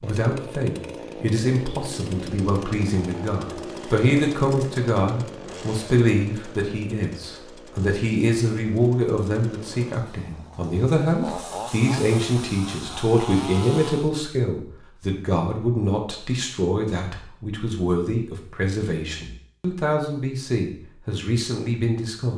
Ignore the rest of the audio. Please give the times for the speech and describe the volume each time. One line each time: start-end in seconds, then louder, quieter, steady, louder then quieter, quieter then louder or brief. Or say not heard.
0.0-22.3 steady.